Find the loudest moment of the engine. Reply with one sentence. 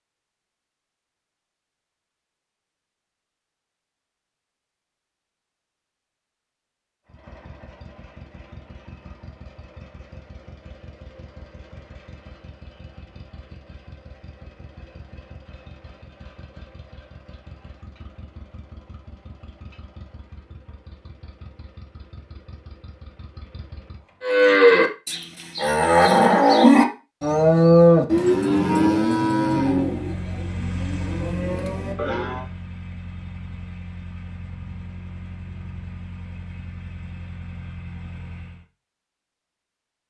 The loudest moment of the engine is at 31 seconds.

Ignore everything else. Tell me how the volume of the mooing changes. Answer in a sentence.
The loudness of the mooing goes down.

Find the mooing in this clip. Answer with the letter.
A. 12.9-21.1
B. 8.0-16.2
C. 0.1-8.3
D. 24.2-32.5
D.